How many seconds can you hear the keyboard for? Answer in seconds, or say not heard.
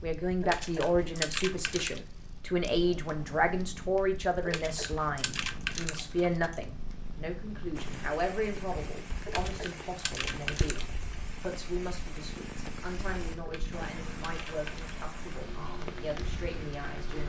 7 s.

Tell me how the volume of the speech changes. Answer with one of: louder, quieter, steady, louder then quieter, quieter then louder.
quieter.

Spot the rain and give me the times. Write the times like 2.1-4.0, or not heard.
7.7-17.2.